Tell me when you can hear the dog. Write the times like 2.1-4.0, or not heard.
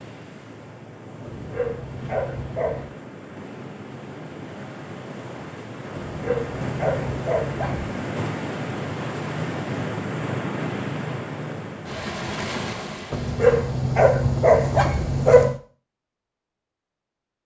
1.2-2.9, 6.0-8.0, 13.1-15.6.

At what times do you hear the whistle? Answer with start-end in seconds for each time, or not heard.
not heard.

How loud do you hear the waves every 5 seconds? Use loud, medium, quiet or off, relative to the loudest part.
medium, loud, loud, off.